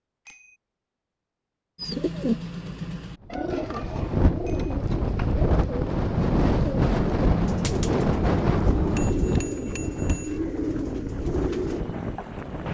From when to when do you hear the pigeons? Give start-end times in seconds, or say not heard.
1.8-11.8.